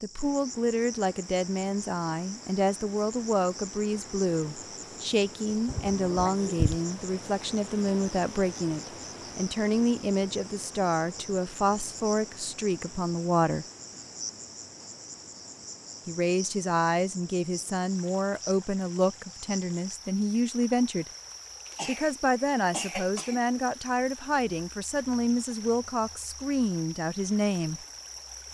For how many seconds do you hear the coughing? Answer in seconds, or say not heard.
3 s.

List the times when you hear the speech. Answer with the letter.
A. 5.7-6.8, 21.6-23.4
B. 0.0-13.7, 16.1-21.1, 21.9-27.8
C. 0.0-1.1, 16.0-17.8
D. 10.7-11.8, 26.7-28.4
B.